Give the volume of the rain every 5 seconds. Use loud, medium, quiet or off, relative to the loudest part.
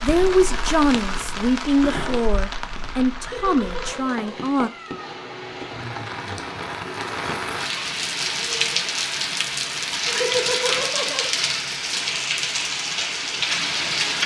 medium, loud, loud.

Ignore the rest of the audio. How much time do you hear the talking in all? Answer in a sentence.
The talking can be heard for 5 seconds in total.